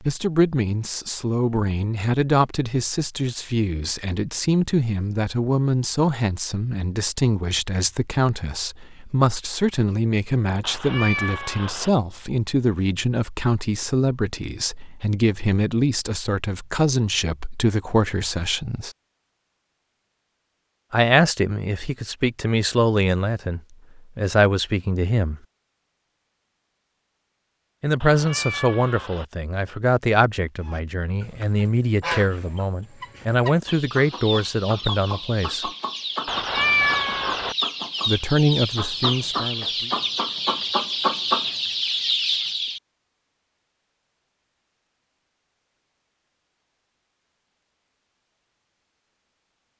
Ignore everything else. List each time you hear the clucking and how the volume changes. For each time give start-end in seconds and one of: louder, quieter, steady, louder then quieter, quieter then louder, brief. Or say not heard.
30.6-42.8 louder.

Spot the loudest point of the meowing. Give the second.
37 s.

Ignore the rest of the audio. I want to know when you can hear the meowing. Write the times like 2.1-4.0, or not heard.
10.6-11.9, 28.0-29.2, 36.2-37.5.